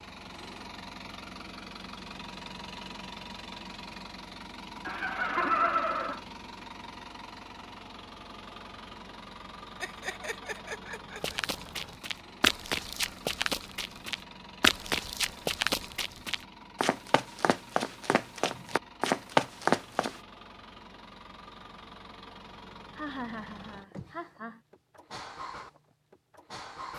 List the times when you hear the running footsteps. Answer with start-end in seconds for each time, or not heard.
11.2-20.1.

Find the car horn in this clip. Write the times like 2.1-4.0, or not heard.
not heard.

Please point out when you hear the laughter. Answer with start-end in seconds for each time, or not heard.
4.8-6.2, 9.8-11.4, 22.9-24.6.